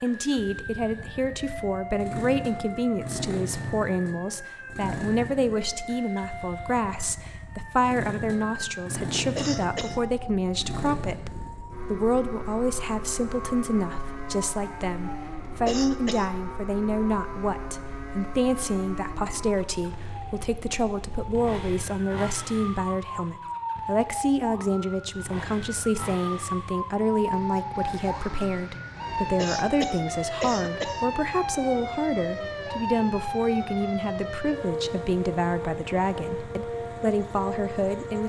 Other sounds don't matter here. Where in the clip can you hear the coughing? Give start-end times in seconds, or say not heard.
9.3-9.9, 15.7-16.3, 29.4-31.1.